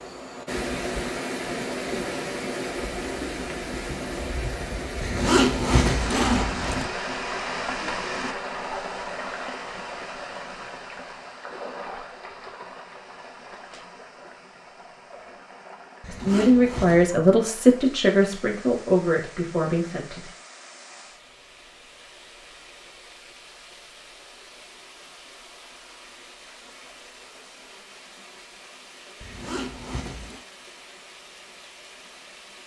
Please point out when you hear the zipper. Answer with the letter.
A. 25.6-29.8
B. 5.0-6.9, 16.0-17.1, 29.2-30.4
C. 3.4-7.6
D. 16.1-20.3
B.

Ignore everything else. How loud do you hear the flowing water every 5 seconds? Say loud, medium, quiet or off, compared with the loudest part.
loud, loud, medium, quiet, quiet, quiet, quiet.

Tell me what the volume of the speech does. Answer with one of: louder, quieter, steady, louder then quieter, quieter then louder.
quieter.